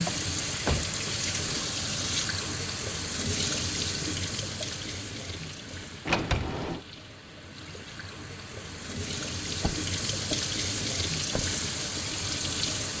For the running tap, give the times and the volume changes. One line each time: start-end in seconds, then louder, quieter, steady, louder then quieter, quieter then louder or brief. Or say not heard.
0.0-12.9 quieter then louder.